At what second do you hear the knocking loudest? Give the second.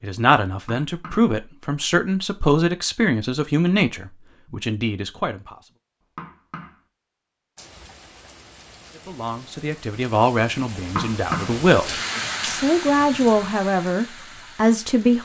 11 s.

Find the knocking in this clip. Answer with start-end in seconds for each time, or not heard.
0.5-1.3, 6.0-6.8, 10.8-11.6.